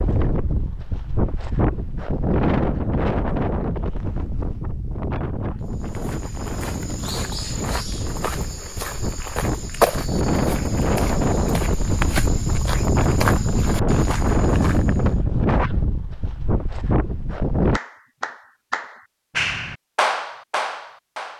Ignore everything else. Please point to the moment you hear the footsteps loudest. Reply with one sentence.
The volume of the footsteps peaks at 10 seconds.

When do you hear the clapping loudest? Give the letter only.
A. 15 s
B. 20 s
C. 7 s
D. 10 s
B.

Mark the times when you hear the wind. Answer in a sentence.
You can hear the wind from 0.0 to 17.8 s.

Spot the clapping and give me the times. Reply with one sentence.
The clapping can be heard from 17.7 to 21.3 s.